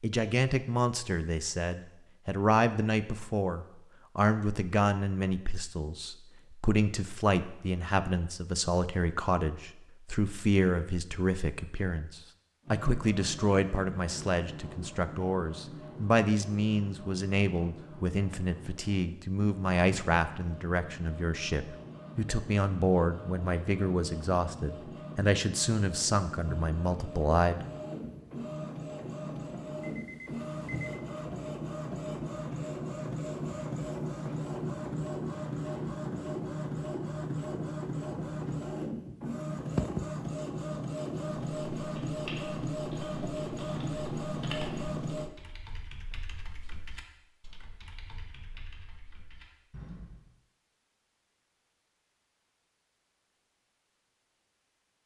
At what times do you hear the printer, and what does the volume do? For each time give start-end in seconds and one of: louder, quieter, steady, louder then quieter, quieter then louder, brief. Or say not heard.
12.6-45.3 louder.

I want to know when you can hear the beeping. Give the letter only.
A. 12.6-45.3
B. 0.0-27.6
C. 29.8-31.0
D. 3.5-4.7
C.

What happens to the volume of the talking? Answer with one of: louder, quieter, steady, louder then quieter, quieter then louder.
steady.